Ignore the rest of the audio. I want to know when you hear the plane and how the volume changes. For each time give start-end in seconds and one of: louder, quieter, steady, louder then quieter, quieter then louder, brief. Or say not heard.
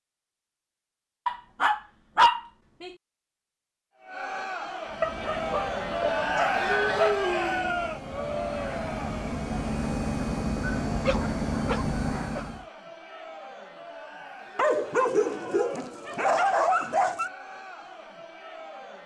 4.8-12.7 louder.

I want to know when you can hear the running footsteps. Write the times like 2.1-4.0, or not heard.
not heard.